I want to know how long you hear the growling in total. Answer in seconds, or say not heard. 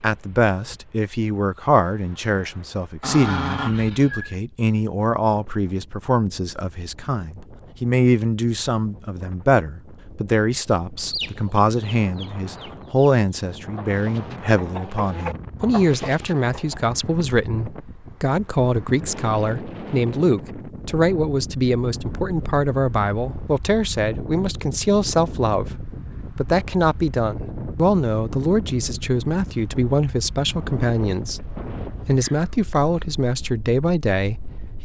2 s.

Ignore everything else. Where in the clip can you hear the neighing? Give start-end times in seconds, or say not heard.
not heard.